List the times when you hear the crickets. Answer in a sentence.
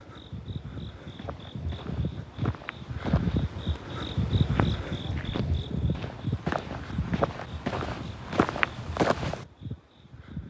The crickets can be heard from 0.0 to 10.4 s.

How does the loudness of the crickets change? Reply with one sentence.
The loudness of the crickets goes up, then down.